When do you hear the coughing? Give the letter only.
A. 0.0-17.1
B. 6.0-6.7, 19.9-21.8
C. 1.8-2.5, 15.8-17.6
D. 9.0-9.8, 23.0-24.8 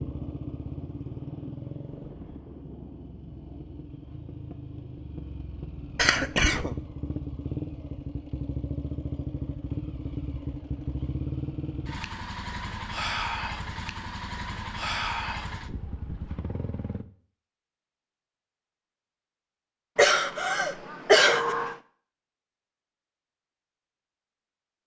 B.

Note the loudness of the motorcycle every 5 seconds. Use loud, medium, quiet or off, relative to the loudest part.
medium, loud, loud, loud, off.